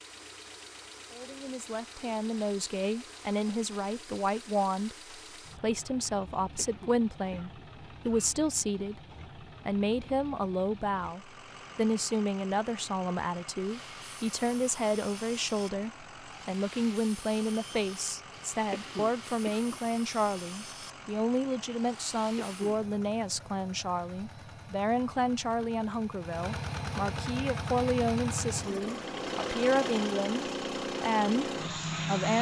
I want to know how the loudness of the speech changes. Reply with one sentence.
The volume of the speech stays about the same.